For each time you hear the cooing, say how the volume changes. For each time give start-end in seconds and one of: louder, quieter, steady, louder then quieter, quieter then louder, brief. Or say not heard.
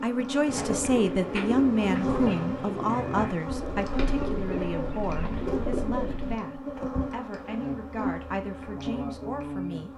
0.5-6.4 steady.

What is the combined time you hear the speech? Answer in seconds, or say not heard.
10 s.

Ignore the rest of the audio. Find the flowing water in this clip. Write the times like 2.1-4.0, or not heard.
not heard.